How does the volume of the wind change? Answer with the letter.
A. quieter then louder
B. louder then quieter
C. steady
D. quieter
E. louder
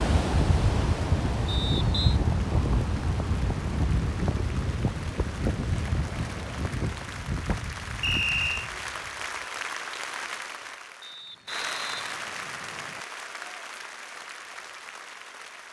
D.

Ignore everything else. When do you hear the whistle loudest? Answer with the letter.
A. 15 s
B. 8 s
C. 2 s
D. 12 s
B.